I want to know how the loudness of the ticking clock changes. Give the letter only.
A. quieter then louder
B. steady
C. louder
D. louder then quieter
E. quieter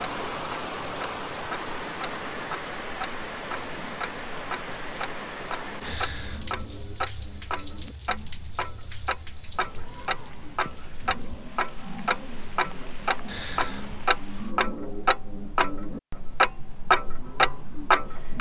C.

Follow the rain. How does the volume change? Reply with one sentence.
The loudness of the rain goes down.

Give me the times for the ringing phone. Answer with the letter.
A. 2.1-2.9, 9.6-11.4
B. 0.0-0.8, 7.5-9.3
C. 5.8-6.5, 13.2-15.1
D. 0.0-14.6
C.